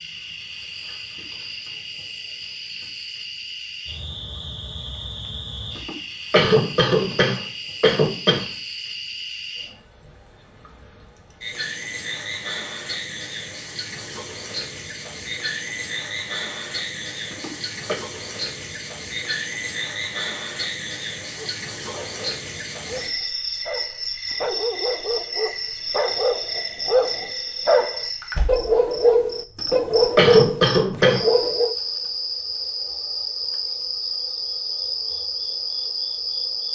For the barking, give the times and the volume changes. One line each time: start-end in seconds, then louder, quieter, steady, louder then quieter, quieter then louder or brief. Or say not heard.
21.3-31.8 louder.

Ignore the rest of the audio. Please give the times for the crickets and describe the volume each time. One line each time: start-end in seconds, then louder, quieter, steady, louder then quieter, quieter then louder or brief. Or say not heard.
0.0-36.7 louder.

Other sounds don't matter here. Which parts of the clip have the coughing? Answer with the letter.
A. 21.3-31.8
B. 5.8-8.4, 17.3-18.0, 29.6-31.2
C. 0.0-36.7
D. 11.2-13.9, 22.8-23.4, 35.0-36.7
B.